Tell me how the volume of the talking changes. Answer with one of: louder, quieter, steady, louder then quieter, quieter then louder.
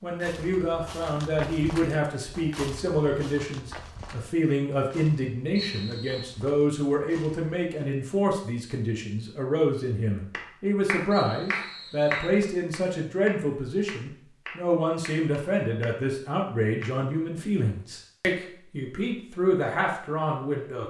steady.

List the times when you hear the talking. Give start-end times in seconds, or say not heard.
0.0-20.8.